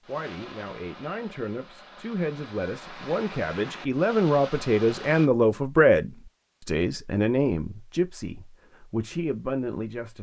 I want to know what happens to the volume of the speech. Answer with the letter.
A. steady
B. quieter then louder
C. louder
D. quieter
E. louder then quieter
E.